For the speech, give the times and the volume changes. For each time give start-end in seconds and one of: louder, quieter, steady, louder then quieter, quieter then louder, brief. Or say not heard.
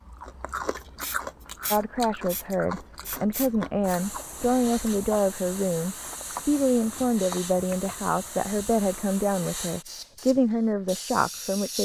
1.7-11.8 steady.